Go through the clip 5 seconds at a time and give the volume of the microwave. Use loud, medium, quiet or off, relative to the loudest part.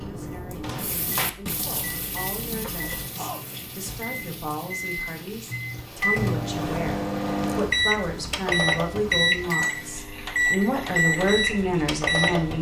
quiet, loud, loud.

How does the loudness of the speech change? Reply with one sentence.
The loudness of the speech goes up.